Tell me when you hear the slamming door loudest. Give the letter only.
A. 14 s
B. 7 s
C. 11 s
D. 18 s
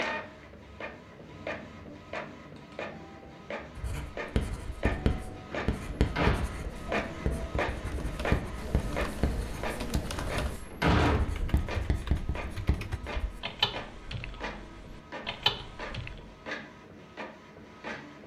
C.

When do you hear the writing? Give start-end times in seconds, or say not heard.
3.8-13.4.